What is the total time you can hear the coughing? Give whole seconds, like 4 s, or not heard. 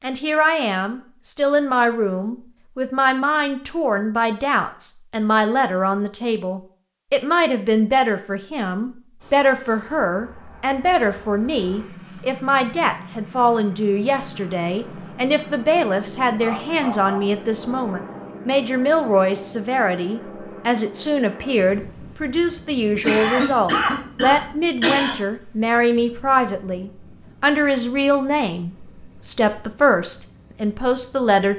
2 s.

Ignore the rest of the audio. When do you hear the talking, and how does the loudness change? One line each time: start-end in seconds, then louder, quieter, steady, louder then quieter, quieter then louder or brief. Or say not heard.
0.0-31.5 steady.